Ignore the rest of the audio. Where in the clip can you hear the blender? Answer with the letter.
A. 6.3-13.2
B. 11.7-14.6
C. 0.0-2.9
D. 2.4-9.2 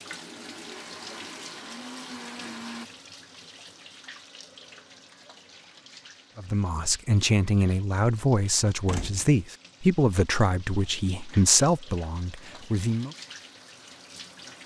C.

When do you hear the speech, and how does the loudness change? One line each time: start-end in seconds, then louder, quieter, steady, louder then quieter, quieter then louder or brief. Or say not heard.
6.3-13.2 steady.